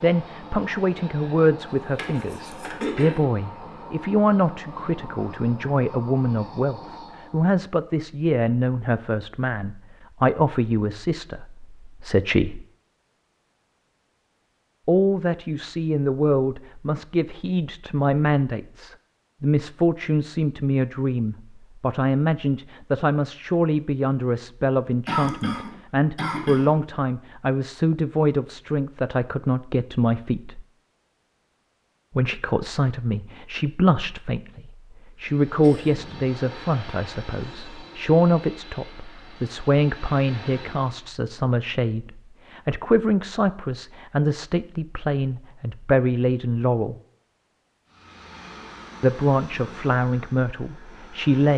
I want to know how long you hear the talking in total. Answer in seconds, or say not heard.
46 s.